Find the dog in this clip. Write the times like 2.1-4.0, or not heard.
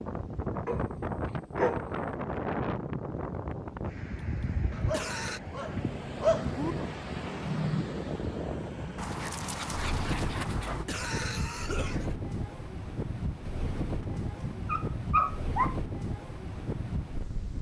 0.7-1.9, 4.7-6.8, 8.9-10.8, 13.4-15.8.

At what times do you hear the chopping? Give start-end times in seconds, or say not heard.
not heard.